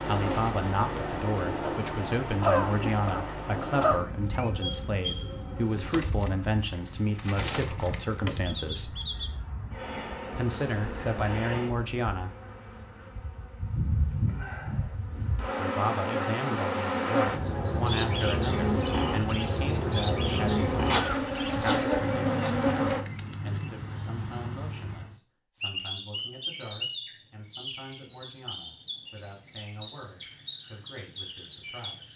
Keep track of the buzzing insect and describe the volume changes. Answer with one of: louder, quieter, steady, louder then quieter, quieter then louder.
quieter then louder.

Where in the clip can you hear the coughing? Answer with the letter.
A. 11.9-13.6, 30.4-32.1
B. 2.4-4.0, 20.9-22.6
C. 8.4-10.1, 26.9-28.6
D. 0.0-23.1
B.